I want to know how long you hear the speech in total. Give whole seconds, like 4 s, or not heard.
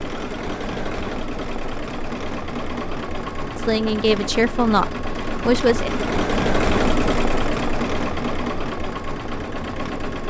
2 s.